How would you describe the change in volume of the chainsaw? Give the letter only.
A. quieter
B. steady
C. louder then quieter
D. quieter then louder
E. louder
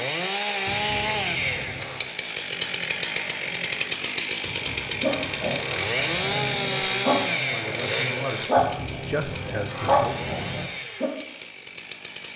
A.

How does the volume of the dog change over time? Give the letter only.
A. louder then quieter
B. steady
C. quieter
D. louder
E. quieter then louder
D.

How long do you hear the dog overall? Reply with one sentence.
You can hear the dog for 6 seconds altogether.